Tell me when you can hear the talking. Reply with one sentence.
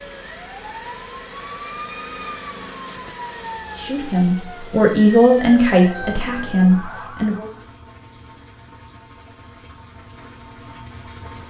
You can hear the talking from 3.8 to 7.5 s.